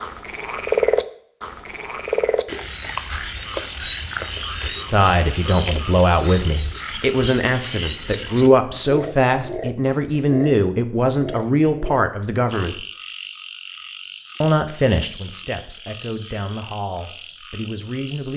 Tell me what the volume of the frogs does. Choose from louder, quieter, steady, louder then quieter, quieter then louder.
quieter.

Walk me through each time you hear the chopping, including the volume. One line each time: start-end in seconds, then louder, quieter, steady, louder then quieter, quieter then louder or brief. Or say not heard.
not heard.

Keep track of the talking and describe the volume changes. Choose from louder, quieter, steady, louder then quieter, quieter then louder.
quieter.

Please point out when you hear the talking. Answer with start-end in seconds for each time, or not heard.
4.8-12.8, 14.4-18.3.